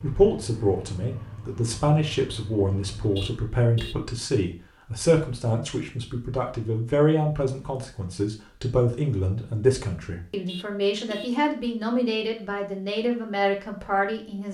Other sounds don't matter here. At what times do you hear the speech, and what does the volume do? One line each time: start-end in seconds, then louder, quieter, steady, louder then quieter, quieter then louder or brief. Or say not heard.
0.0-14.4 steady.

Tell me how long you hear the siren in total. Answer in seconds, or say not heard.
not heard.